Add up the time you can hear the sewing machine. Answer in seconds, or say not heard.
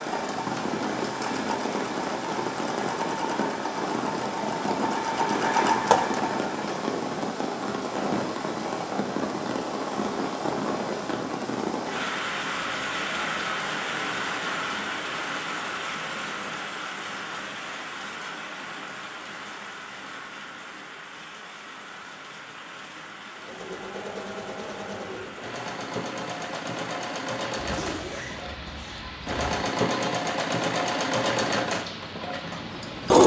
17 s.